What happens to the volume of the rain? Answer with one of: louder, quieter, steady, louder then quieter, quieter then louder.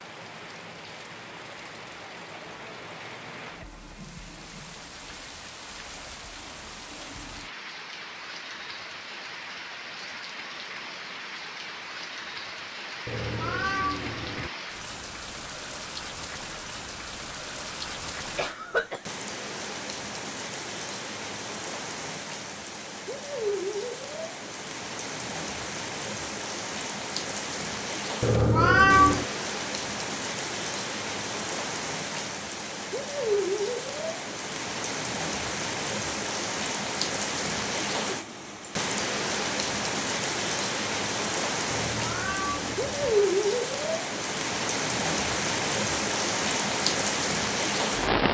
louder.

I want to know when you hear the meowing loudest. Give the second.
29 s.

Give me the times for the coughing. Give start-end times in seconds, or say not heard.
18.4-19.1.